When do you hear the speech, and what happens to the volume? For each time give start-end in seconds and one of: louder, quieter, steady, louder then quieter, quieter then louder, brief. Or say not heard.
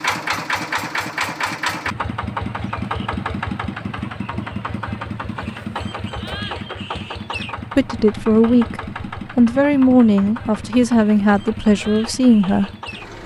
7.8-12.7 steady.